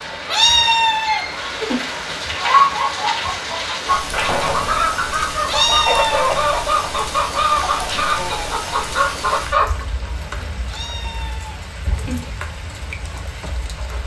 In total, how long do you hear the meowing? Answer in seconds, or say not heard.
4 s.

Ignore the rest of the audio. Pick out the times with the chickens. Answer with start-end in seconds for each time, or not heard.
2.3-9.8.